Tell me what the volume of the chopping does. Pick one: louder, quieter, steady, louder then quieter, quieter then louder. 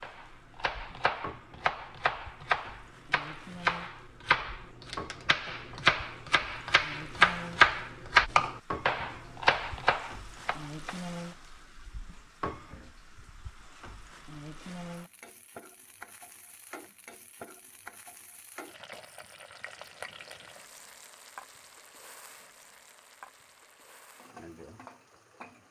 louder then quieter.